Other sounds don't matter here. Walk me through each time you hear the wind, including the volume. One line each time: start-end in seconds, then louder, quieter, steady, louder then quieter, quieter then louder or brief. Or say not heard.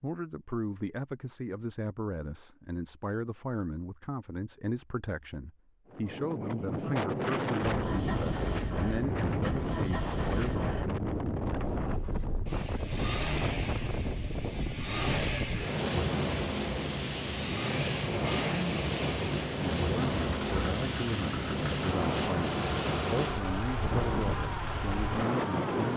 5.8-25.9 steady.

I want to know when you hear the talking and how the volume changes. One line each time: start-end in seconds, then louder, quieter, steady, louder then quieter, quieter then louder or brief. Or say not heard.
0.0-10.7 steady
19.6-25.9 steady.